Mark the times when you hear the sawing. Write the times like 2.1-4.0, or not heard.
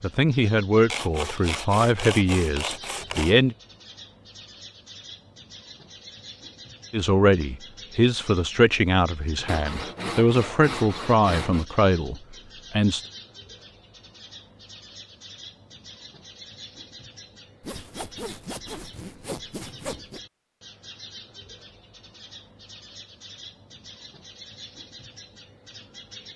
0.9-3.4, 9.4-11.7, 17.6-20.2.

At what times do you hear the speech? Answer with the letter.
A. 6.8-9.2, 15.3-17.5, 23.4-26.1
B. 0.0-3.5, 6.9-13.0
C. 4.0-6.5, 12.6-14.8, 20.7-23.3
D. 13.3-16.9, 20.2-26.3
B.